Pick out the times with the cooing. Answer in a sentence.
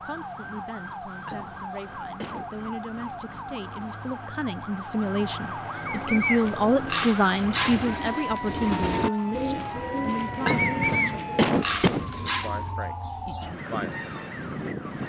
The cooing can be heard from 5.8 to 12.7 s.